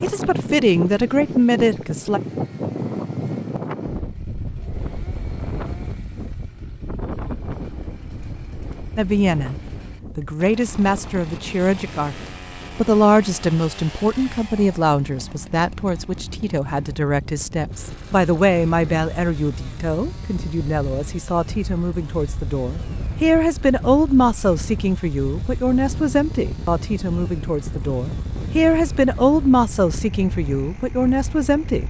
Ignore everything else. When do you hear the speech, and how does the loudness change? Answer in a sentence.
You can hear the speech briefly from 0.0 to 2.2 s; briefly from 8.9 to 9.6 s; briefly from 10.2 to 12.2 s; and from 12.8 to 31.8 s, at a steady volume.